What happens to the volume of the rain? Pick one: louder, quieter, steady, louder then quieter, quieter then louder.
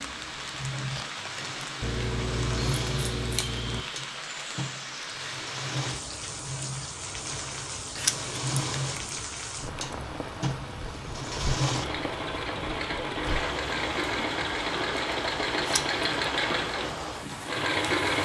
steady.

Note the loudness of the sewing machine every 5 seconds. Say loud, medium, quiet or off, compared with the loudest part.
medium, medium, loud, loud.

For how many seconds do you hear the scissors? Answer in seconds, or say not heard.
4 s.